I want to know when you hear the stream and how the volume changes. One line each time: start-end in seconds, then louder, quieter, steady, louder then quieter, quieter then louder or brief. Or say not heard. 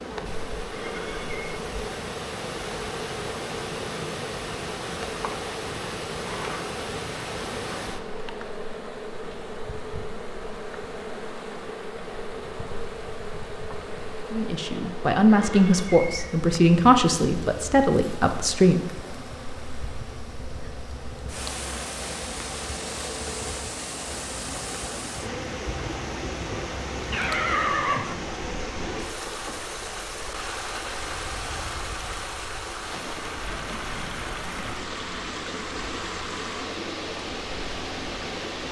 0.0-38.6 quieter then louder.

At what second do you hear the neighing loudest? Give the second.
28 s.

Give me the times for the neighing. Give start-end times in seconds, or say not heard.
0.7-1.4, 15.2-16.3, 26.5-28.1.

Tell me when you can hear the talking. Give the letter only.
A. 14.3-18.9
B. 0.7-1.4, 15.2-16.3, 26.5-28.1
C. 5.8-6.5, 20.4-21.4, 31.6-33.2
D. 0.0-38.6
A.